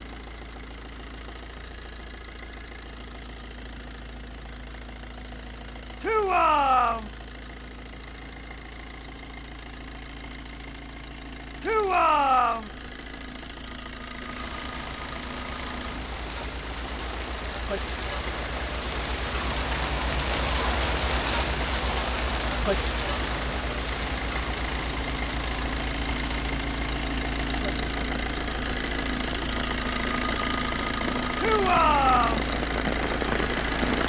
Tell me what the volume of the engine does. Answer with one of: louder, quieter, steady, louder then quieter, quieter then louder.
louder.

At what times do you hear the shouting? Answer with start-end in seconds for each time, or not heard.
6.0-7.1, 11.6-12.7, 31.4-32.5.